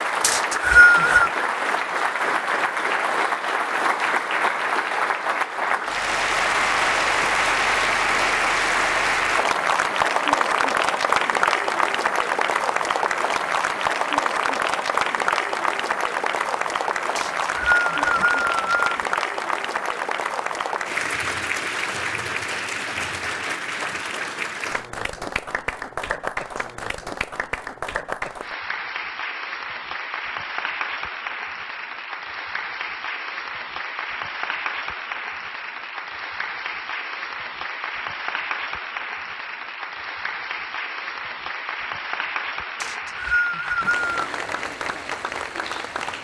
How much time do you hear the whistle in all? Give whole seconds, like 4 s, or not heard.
4 s.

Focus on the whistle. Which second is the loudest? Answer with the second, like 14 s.
1 s.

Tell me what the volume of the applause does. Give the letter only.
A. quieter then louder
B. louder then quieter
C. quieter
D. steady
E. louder
C.